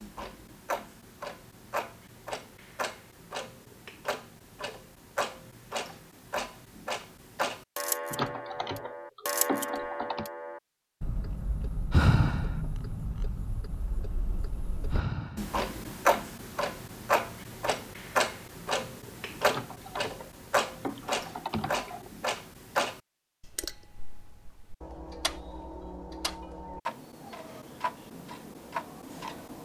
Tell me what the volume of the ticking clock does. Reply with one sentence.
The volume of the ticking clock goes up, then down.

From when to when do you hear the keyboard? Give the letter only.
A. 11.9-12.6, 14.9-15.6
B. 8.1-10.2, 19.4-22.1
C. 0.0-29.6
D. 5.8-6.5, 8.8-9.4
B.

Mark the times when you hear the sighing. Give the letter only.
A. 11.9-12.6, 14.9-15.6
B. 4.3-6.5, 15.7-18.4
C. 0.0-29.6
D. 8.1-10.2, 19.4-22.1
A.